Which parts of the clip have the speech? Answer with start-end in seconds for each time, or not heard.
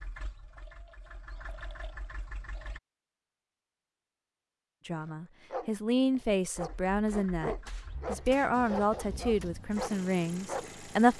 4.8-11.1.